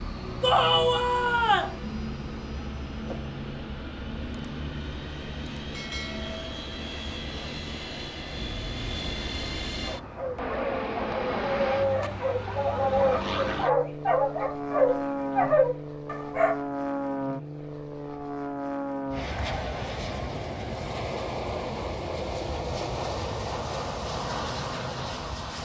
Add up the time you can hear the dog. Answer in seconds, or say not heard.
7 s.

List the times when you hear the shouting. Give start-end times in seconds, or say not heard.
0.4-1.8.